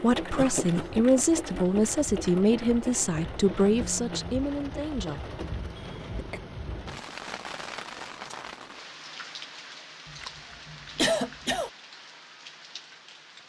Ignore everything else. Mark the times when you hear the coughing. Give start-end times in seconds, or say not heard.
0.3-0.9, 5.8-6.4, 10.1-11.7.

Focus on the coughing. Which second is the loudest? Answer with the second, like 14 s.
11 s.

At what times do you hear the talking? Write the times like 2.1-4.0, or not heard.
0.0-5.3.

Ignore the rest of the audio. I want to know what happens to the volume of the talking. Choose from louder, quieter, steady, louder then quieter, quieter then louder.
quieter.